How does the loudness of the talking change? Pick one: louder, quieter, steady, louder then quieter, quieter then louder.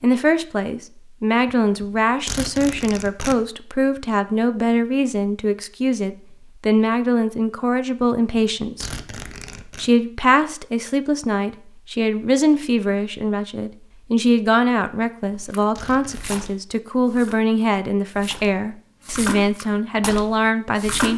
steady.